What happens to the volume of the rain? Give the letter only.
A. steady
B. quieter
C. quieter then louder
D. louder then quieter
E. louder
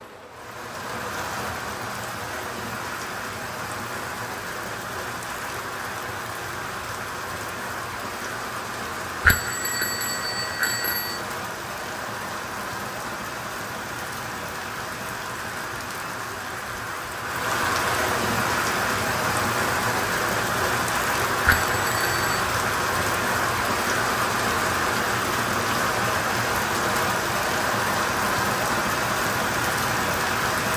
E.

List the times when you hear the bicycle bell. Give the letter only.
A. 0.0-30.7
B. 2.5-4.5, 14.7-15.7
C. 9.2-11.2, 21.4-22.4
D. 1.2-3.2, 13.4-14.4
C.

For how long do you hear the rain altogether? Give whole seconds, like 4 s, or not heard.
31 s.